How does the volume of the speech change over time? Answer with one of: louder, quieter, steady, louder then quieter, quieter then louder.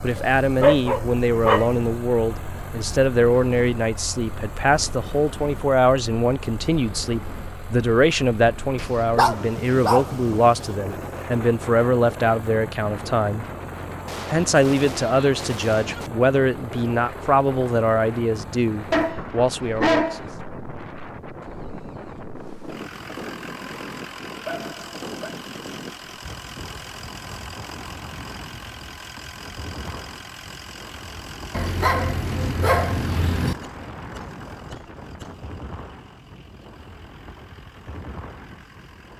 steady.